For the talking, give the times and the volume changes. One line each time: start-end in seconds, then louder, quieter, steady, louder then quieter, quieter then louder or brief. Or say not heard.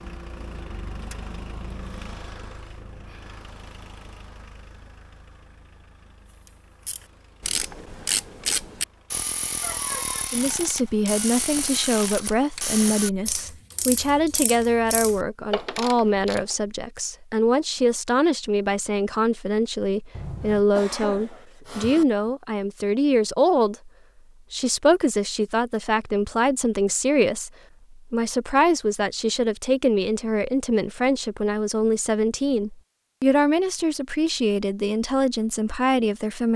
10.3-23.9 steady
24.5-36.5 steady.